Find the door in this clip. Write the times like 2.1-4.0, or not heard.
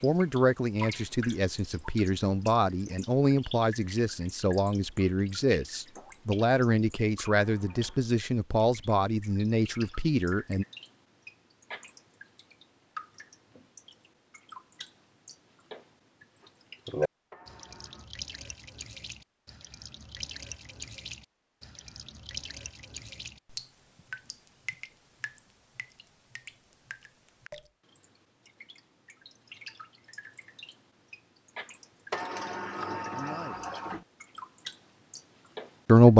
7.3-8.1, 17.3-18.1, 32.1-34.0.